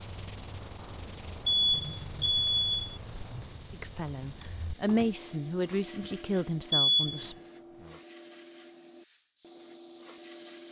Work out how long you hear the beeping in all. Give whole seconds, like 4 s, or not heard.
2 s.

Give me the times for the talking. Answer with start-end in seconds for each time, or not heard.
3.7-7.3.